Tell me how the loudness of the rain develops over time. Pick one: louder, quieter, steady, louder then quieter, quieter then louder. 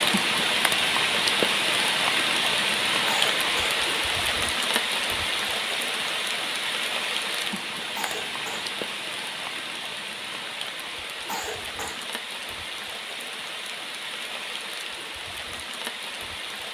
quieter.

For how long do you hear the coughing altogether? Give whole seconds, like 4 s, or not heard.
2 s.